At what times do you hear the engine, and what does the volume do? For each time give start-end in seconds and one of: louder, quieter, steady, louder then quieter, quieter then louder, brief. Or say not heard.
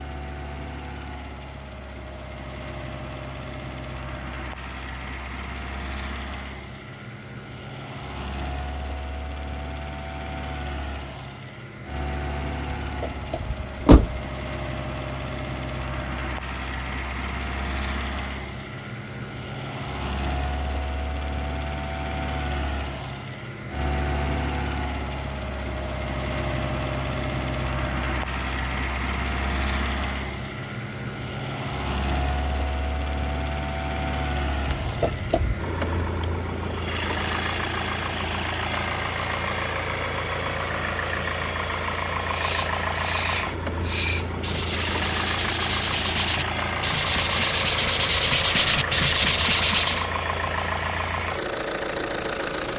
0.0-52.7 louder.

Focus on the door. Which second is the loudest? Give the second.
14 s.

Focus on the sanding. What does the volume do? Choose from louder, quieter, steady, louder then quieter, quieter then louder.
louder.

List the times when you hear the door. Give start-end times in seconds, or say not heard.
12.8-14.2, 34.6-35.6.